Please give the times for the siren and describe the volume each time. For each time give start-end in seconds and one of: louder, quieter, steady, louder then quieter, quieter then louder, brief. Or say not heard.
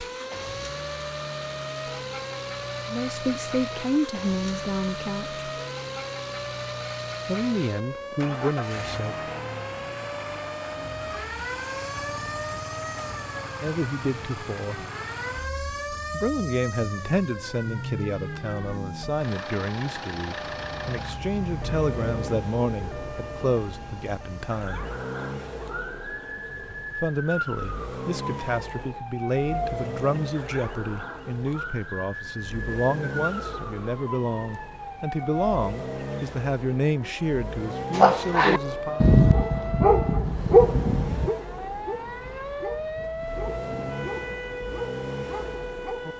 0.0-46.1 steady.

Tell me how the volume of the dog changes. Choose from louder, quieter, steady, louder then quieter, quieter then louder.
quieter.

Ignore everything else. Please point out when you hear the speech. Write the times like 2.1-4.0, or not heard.
2.9-5.4, 7.2-9.2, 13.6-14.8, 16.1-24.9, 26.9-39.0.